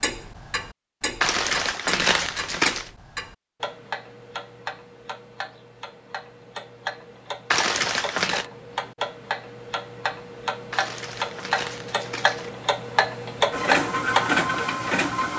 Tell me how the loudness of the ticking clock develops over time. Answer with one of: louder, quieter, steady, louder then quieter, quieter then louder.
louder.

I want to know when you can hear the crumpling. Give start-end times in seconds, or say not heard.
1.2-2.9, 7.5-8.4, 10.7-12.5.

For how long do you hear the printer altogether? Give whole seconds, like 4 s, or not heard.
2 s.